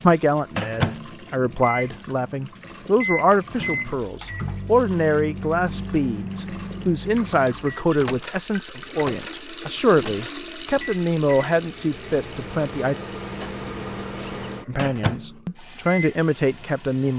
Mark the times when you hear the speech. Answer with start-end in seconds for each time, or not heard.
0.0-12.9, 14.7-17.1.